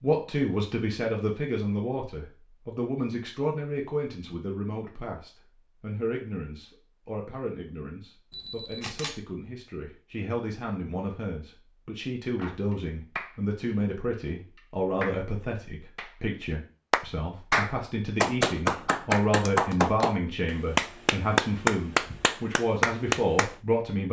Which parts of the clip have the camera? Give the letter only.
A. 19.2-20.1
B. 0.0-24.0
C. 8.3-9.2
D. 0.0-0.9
C.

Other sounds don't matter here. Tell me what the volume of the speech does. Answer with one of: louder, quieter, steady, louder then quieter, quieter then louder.
quieter then louder.